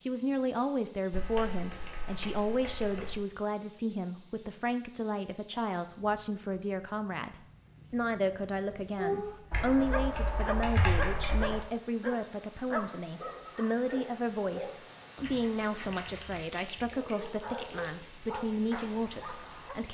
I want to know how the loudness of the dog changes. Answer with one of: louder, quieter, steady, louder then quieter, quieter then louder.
quieter.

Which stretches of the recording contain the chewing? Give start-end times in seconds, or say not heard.
not heard.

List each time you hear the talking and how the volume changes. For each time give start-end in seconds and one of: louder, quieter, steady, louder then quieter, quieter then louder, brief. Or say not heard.
0.0-19.9 steady.